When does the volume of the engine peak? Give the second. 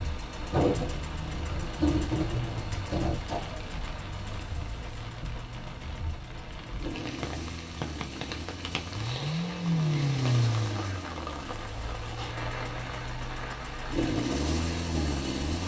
10 s.